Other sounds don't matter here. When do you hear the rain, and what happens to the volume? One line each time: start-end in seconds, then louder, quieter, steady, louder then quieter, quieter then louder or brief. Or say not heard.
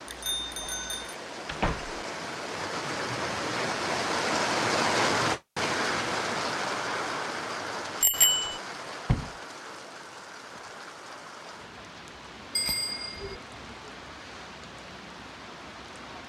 0.0-16.2 louder then quieter.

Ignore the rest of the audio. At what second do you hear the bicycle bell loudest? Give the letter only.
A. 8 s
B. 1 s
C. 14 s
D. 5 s
A.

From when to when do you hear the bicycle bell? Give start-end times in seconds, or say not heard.
0.1-1.1, 8.0-8.6, 12.6-13.4.